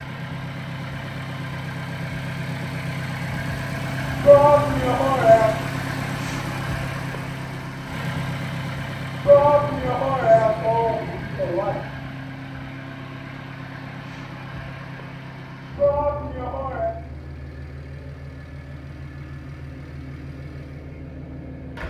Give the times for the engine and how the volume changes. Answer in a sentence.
The engine can be heard from 0.0 to 21.8 s, getting quieter.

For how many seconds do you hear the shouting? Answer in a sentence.
The shouting can be heard for 5 seconds in total.